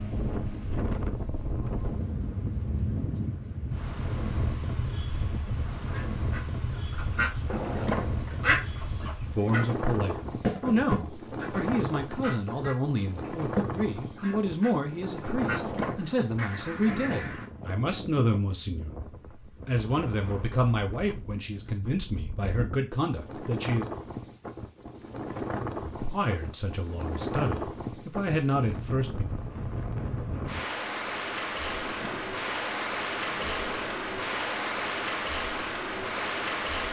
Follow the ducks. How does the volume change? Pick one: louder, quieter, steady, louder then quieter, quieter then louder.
louder then quieter.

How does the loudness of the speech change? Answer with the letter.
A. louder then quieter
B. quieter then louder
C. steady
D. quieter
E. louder
C.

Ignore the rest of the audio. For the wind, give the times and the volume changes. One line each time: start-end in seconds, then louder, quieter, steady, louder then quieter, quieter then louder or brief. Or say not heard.
0.0-36.8 quieter then louder.